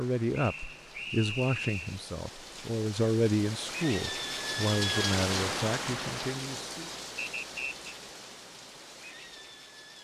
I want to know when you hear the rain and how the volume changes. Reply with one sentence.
You can hear the rain from 0.0 to 9.9 s, getting louder then quieter.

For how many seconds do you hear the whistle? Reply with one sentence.
You can hear the whistle for 2 seconds altogether.